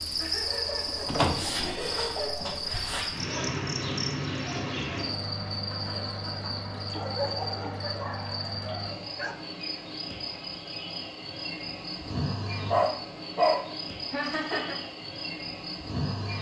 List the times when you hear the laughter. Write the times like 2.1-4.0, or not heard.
0.1-2.8, 5.7-6.8, 14.1-14.8.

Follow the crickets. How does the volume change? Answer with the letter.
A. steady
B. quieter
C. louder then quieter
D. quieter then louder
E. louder
B.